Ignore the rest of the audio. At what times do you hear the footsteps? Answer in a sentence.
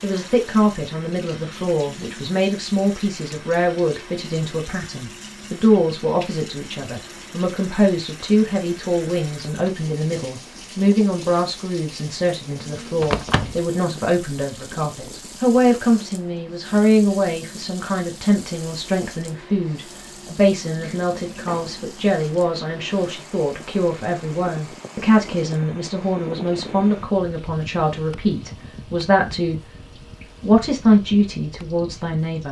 You can't hear the footsteps here.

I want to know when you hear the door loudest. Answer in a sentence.
The loudest moment of the door is at 13 seconds.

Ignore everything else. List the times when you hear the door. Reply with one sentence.
The door can be heard from 13.0 to 13.7 s and from 20.8 to 21.9 s.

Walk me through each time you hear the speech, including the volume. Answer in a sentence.
The speech can be heard from 0.0 to 29.6 s, at a steady volume; and briefly from 30.4 to 32.4 s.